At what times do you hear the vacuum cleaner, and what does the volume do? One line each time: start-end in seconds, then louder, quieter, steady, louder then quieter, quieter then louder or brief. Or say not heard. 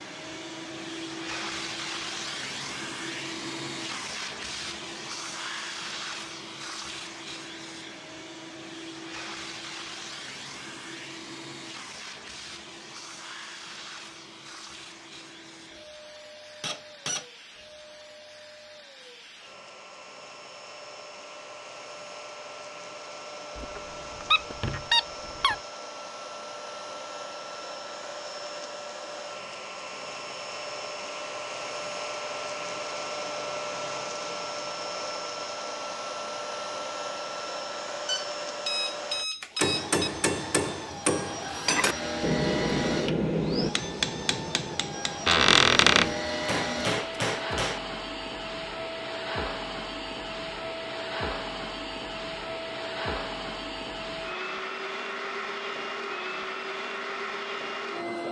0.0-58.2 quieter then louder.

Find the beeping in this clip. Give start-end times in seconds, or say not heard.
38.0-40.1.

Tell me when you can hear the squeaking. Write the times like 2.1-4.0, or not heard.
16.6-17.2, 23.6-25.6, 45.2-46.1.